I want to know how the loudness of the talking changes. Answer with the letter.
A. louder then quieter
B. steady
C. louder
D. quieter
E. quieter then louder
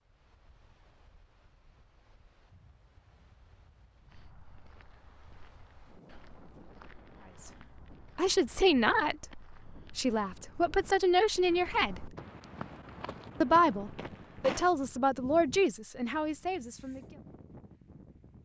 D.